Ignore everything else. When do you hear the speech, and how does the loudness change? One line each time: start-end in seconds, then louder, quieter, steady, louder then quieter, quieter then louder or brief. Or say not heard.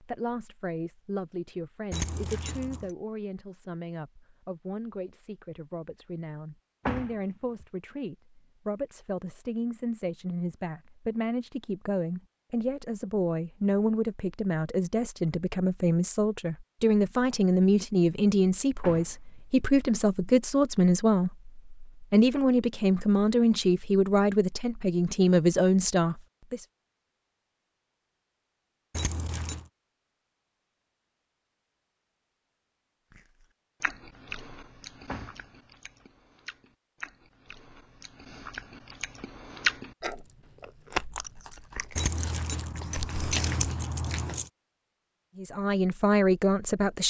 0.0-26.6 louder
45.4-47.0 brief.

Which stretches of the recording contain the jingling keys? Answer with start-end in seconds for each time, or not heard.
1.9-2.9, 28.9-29.6, 42.0-44.5.